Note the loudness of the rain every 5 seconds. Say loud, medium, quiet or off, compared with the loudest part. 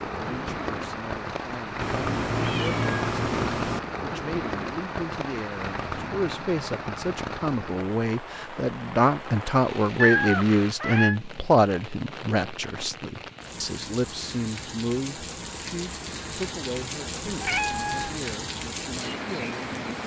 loud, loud, medium, loud.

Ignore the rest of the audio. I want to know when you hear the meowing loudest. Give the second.
10 s.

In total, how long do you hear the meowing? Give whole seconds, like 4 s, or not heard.
4 s.